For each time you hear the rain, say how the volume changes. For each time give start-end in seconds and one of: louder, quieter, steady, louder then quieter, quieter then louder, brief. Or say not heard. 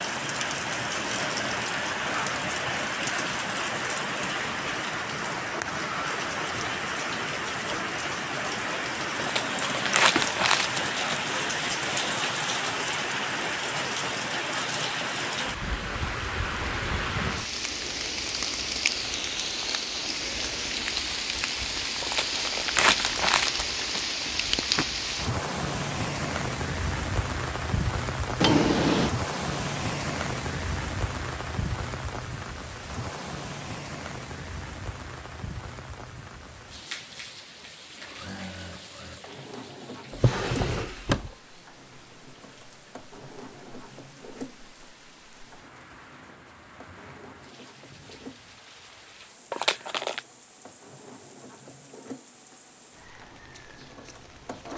0.0-54.7 quieter.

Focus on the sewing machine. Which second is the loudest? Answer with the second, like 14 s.
40 s.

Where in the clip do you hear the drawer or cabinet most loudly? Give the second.
29 s.